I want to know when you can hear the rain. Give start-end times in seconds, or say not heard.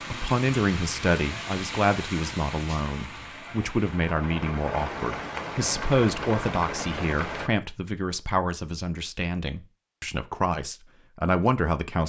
0.0-7.5.